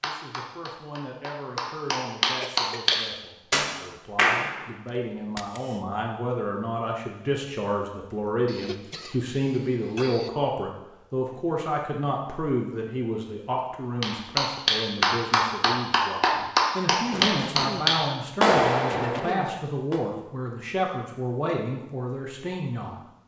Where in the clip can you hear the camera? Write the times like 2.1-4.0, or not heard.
4.8-5.8.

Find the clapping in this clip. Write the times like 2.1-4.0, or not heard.
0.0-4.7, 14.0-20.0.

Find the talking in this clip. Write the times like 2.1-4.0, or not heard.
0.0-22.9.